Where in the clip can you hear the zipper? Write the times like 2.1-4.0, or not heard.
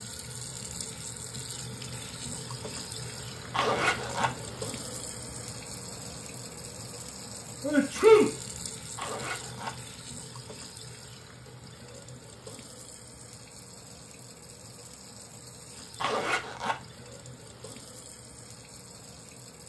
3.5-4.3, 8.9-9.8, 16.0-16.8.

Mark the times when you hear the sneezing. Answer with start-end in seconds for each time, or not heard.
7.6-8.3.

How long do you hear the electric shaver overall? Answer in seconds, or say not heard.
not heard.